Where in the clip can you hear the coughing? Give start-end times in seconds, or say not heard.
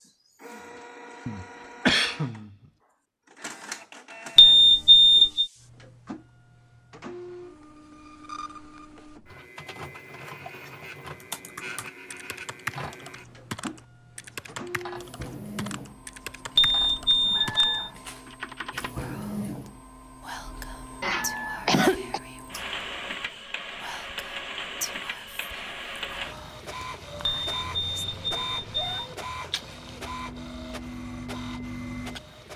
1.2-2.5, 21.0-22.2.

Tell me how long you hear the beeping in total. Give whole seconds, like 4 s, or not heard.
4 s.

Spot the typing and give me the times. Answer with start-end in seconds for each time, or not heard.
11.1-18.9.